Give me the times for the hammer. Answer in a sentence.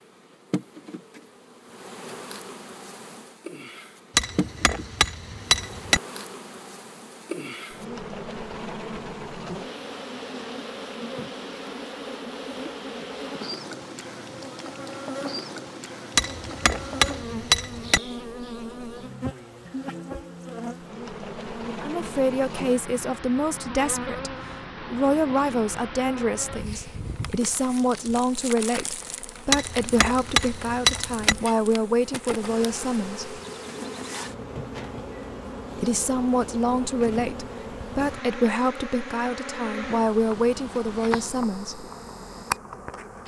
You can hear the hammer from 4.2 to 6.0 s, from 16.1 to 18.0 s and from 29.5 to 31.4 s.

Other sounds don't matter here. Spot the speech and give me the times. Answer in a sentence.
You can hear the speech from 21.5 to 33.4 s and from 35.8 to 41.9 s.